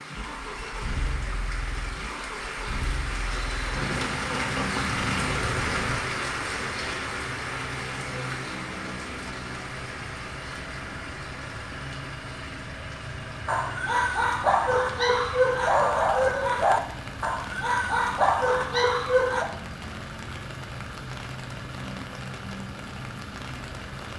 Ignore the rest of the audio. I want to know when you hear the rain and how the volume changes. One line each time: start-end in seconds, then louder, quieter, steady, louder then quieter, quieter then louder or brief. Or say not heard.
0.0-24.1 quieter.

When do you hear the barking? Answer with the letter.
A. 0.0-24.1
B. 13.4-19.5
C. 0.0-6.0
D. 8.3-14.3
B.